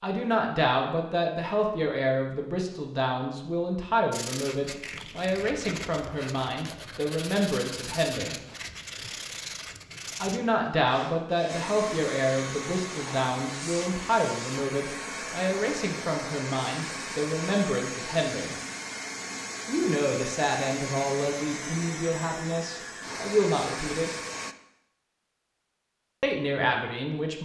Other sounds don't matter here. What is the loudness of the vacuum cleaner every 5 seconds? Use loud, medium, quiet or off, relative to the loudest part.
off, off, loud, loud, loud, off.